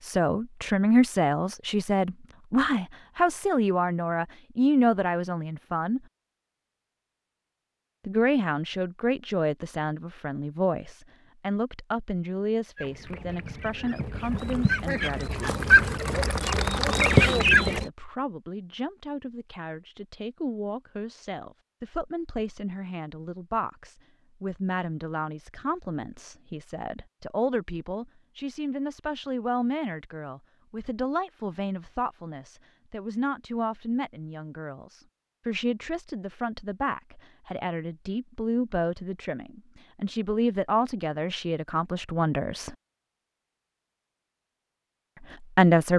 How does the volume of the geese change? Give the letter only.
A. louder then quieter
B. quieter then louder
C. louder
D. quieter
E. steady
C.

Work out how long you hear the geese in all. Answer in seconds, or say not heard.
5 s.